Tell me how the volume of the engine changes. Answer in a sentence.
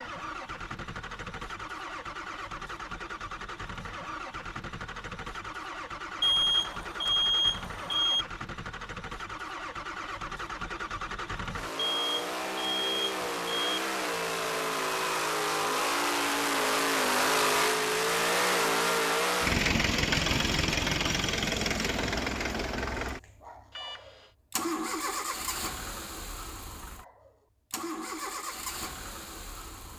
The volume of the engine goes up, then down.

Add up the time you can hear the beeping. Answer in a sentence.
The beeping can be heard for 5 seconds in total.